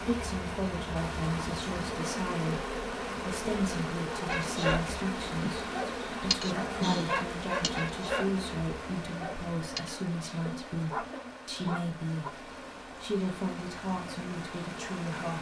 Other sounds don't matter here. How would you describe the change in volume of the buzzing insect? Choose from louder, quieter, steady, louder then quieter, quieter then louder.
quieter.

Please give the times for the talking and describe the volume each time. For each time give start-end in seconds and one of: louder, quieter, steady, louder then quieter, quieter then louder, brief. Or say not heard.
0.1-15.3 steady.